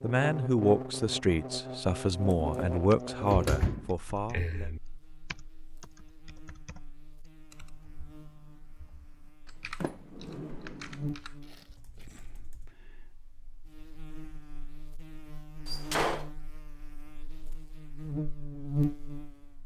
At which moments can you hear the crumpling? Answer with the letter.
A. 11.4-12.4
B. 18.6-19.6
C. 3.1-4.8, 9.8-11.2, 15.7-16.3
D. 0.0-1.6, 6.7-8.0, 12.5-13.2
A.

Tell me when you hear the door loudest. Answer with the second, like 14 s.
16 s.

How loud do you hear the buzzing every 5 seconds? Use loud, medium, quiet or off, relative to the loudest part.
loud, quiet, medium, loud.